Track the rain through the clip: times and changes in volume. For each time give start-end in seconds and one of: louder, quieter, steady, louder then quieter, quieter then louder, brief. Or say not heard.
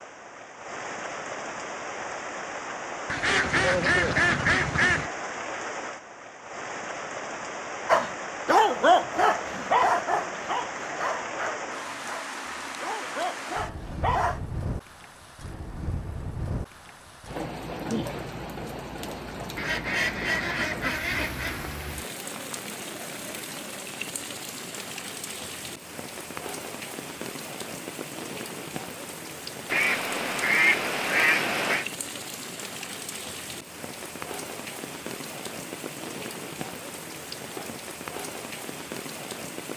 0.0-39.7 steady.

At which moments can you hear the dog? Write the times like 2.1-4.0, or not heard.
7.8-14.4.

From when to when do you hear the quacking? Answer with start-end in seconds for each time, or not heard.
3.0-5.1, 19.6-21.8, 29.7-31.9.